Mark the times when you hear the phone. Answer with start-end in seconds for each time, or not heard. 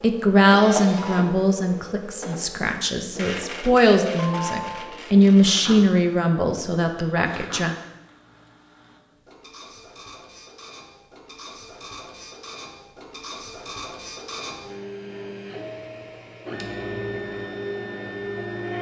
4.0-5.0.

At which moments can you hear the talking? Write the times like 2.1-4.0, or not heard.
0.0-7.8.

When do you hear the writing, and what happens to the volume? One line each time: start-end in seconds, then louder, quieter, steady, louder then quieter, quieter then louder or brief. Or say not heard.
not heard.